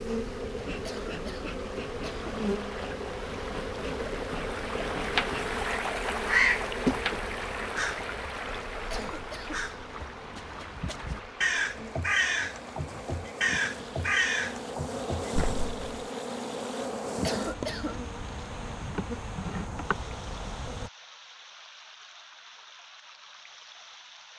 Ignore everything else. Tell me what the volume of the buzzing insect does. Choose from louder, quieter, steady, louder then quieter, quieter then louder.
quieter then louder.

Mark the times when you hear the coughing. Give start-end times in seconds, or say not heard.
0.8-2.3, 8.9-9.7, 17.2-18.0.